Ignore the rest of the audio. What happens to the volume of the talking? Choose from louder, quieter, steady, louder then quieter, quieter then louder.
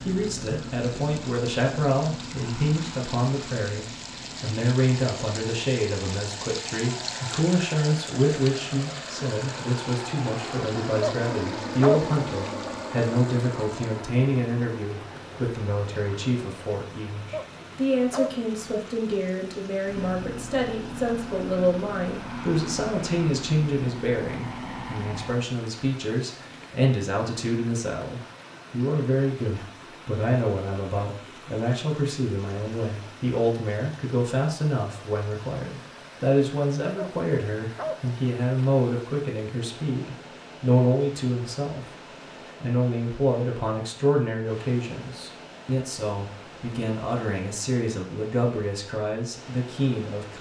steady.